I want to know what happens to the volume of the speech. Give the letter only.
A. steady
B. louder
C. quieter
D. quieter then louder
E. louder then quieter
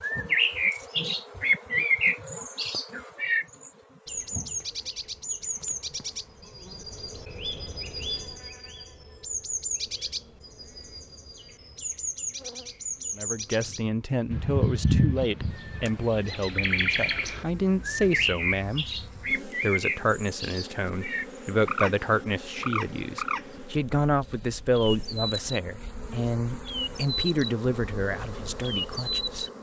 A.